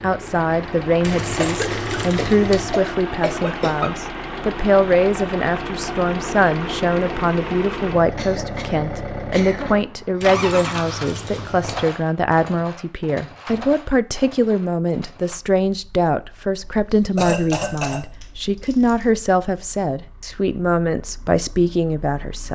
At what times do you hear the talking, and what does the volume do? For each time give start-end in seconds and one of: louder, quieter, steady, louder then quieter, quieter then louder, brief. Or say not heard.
0.0-22.4 steady.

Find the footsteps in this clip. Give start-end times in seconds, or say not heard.
not heard.